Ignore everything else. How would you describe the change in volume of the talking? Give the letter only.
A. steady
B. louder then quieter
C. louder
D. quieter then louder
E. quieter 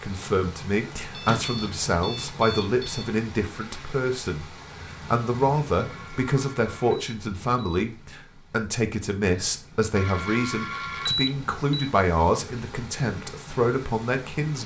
A.